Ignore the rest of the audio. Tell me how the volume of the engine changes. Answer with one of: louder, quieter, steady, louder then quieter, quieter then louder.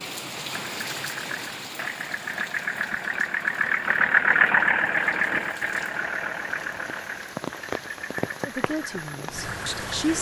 louder then quieter.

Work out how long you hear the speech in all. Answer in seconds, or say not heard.
2 s.